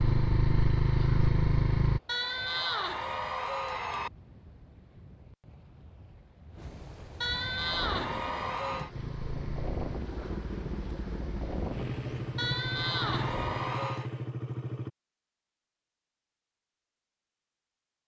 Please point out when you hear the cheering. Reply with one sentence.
The cheering can be heard from 2.0 to 4.1 s, from 7.2 to 8.9 s and from 12.3 to 14.1 s.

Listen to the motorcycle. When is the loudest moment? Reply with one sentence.
The loudest moment of the motorcycle is at 1 second.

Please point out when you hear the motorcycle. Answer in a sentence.
The motorcycle can be heard from 0.0 to 2.0 s and from 8.9 to 14.9 s.